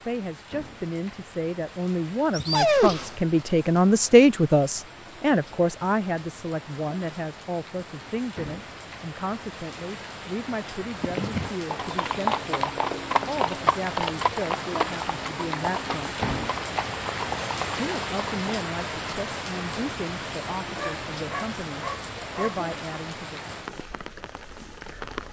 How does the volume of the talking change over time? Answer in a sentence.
The volume of the talking goes down.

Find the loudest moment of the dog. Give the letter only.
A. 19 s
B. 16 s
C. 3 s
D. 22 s
C.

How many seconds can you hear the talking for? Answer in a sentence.
You can hear the talking for 22 seconds altogether.